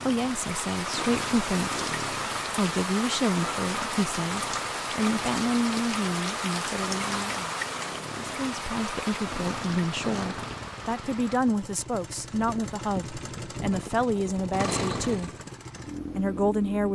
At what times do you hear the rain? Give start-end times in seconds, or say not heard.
0.0-11.4.